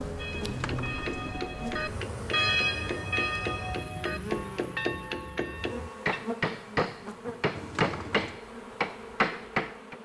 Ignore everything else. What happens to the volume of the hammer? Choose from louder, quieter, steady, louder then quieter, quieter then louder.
louder.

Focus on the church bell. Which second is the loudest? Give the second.
3 s.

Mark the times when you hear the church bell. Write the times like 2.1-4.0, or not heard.
0.1-6.2.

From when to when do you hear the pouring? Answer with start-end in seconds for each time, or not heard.
0.4-1.4, 7.5-8.4.